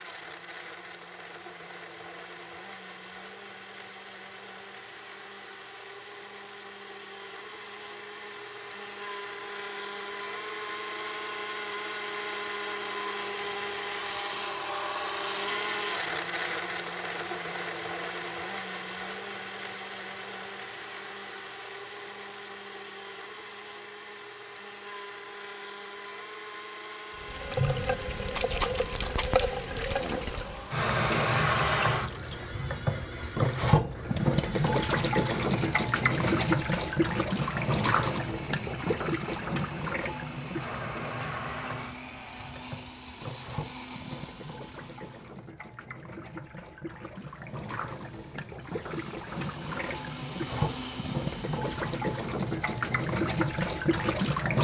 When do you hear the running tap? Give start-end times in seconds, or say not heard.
27.1-54.5.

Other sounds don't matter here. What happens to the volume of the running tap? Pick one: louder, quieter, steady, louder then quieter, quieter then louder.
quieter then louder.